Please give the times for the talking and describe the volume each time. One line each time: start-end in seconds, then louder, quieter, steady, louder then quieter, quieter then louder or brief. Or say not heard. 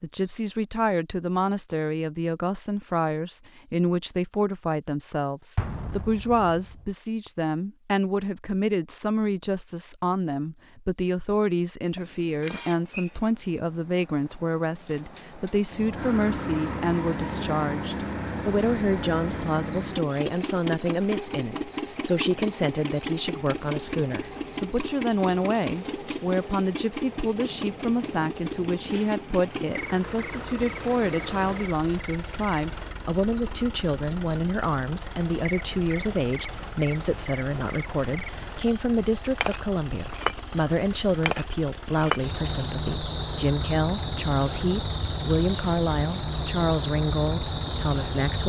0.0-48.4 steady.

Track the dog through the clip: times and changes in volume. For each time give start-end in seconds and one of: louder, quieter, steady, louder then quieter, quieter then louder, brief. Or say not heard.
not heard.